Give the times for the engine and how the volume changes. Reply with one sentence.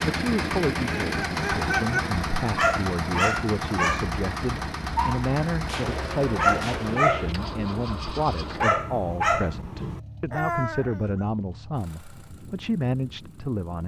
The engine can be heard from 0.0 to 13.8 s, getting quieter.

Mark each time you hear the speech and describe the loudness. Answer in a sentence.
You can hear the speech from 0.0 to 13.8 s, at a steady volume.